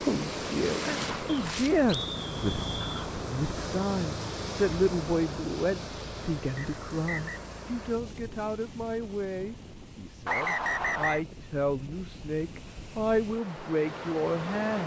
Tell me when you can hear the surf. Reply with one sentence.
You can hear the surf from 0.0 to 14.8 s.